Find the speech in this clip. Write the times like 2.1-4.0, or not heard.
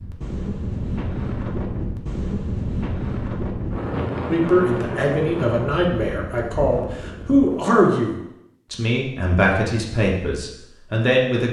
4.2-11.4.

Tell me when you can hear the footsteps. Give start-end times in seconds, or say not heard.
not heard.